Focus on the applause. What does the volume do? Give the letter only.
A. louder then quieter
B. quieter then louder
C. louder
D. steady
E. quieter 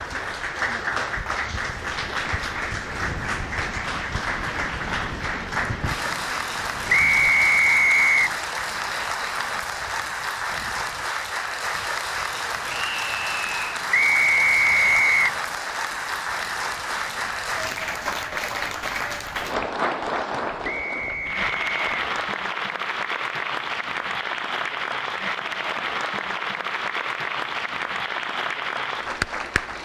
D.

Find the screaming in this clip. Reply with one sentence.
The screaming can be heard from 12.7 to 13.7 s.